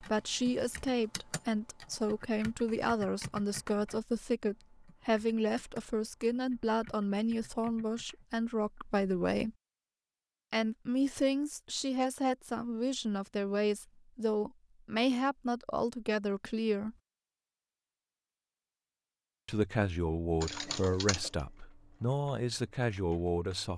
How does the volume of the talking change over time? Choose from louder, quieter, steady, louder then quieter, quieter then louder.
steady.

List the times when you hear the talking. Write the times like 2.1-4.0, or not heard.
0.0-9.6, 10.5-16.9, 19.4-23.7.